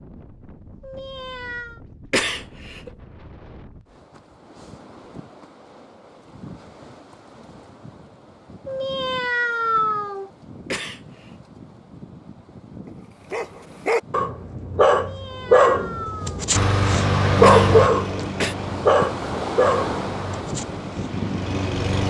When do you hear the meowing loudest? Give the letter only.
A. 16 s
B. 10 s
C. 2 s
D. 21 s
B.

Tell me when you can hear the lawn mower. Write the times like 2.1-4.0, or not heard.
16.5-22.0.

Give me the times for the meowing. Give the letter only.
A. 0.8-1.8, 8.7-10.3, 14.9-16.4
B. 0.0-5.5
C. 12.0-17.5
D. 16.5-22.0
A.